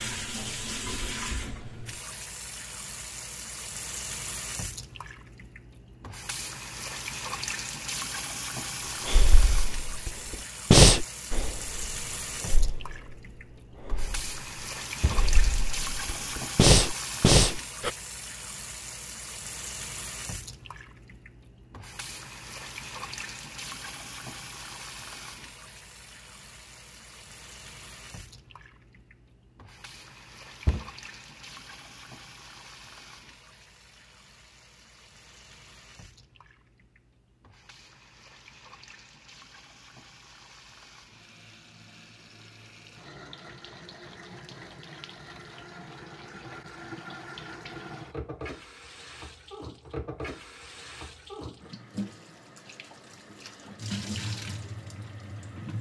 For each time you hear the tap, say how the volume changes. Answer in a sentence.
You can hear the tap from 0.0 to 55.7 s, getting quieter then louder.